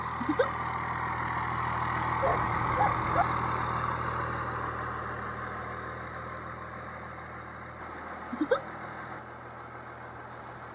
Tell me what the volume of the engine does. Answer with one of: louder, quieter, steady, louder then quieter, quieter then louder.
quieter.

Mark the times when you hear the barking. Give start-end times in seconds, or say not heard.
2.2-3.2.